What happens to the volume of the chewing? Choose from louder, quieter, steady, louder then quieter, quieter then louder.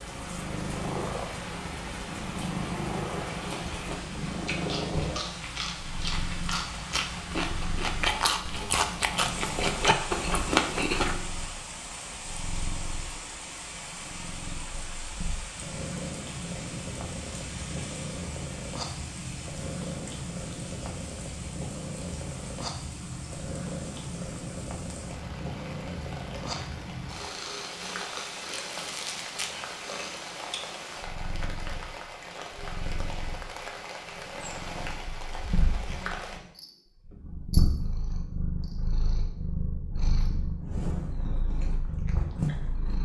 louder.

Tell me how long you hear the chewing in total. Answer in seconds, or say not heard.
8 s.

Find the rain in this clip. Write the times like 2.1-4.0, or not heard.
0.0-36.4.